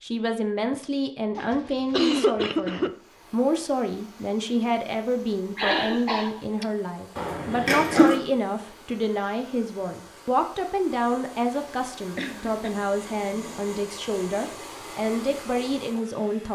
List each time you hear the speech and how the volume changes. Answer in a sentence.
You can hear the speech from 0.0 to 16.5 s, at a steady volume.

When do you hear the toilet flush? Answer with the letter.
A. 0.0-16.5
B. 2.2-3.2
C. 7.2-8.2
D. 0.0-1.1
C.